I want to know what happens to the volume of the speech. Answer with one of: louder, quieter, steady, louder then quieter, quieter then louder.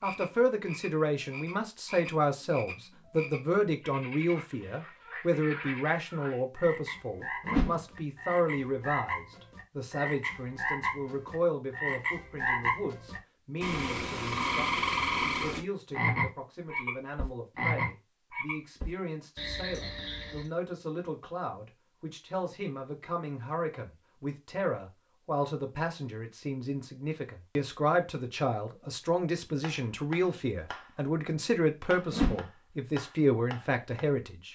quieter then louder.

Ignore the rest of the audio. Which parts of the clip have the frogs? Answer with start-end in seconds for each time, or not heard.
0.0-20.5.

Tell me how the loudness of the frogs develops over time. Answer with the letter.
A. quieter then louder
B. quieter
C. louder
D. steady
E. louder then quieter
C.